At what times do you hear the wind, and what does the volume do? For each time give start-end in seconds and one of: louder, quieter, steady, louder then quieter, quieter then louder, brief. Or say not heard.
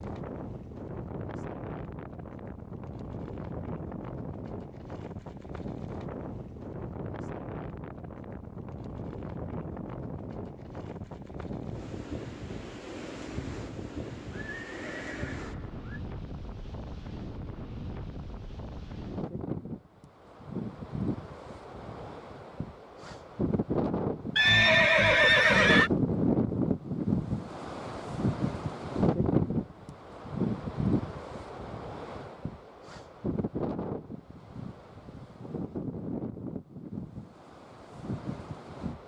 0.0-39.0 louder then quieter.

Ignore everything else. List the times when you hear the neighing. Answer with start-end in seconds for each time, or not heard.
14.3-16.0, 24.4-25.9.